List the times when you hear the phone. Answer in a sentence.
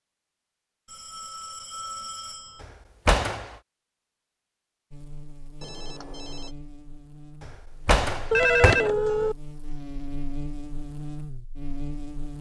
You can hear the phone from 0.8 to 2.6 s, from 5.6 to 6.5 s and from 8.3 to 9.3 s.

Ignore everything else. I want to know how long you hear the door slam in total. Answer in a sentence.
The door slam can be heard for 2 seconds in total.